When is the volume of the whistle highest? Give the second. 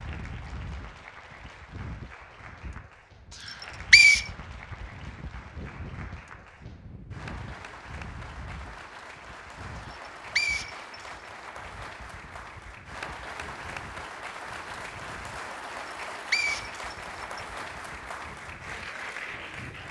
4 s.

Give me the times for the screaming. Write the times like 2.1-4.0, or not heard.
not heard.